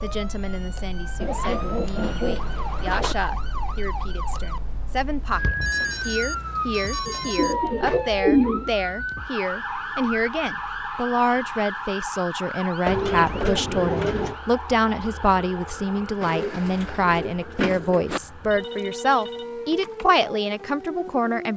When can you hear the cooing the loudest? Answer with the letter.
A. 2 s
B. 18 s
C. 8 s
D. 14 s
C.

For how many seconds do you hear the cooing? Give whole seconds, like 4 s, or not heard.
7 s.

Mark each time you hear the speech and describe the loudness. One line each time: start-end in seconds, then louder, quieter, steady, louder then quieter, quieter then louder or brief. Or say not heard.
0.0-21.5 louder.